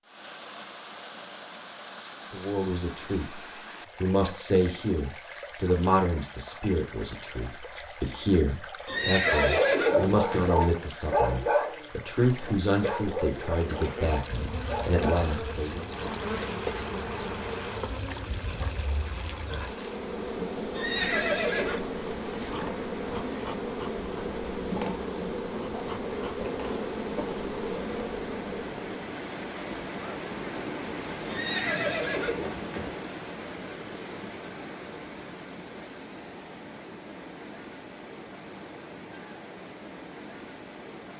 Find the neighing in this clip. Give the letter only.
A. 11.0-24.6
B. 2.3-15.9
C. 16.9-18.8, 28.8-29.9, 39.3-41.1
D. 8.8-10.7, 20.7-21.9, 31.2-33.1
D.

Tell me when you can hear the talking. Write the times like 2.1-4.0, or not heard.
2.3-15.9.